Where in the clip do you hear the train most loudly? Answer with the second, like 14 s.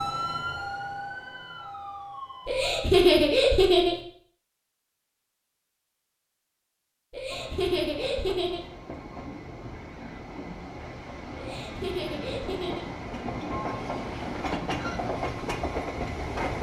15 s.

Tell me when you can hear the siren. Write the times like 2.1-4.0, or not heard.
0.0-2.9.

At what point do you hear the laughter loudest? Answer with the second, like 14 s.
3 s.